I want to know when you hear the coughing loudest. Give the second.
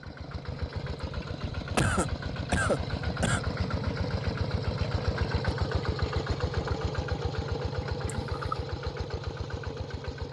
2 s.